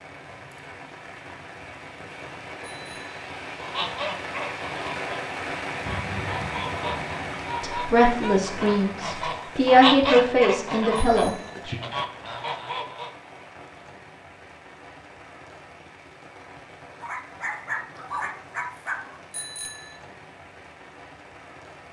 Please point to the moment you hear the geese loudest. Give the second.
10 s.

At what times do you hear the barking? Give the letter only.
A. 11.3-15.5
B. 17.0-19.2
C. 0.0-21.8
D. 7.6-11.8
B.